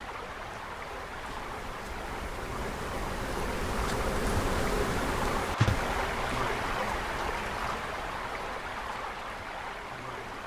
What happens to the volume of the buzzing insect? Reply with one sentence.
The volume of the buzzing insect goes up, then down.